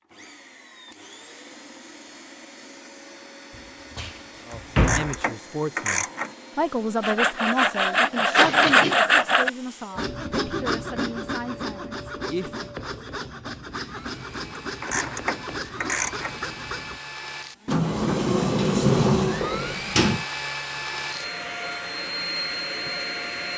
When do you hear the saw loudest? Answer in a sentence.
The volume of the saw peaks at 9 seconds.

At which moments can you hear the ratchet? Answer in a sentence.
The ratchet can be heard from 4.5 to 6.3 s and from 14.8 to 16.4 s.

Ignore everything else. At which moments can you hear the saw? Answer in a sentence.
The saw can be heard from 7.0 to 17.0 s.